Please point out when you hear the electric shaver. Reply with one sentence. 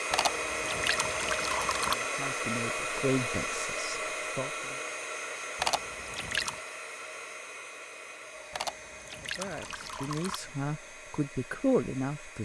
You can't hear the electric shaver here.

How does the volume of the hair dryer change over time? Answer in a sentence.
The loudness of the hair dryer goes down.